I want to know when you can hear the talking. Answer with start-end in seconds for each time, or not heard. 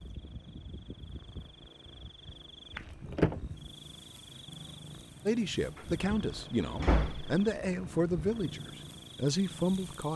5.2-10.1.